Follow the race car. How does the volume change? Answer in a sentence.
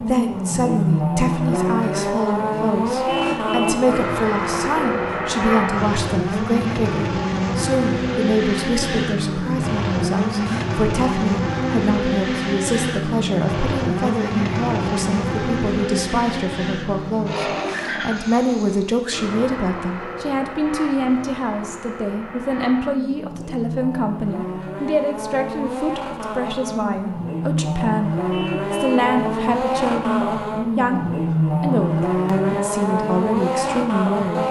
The volume of the race car goes down, then up.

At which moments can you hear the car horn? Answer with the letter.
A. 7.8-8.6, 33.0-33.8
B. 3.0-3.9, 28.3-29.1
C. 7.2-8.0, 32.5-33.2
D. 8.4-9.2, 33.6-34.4
B.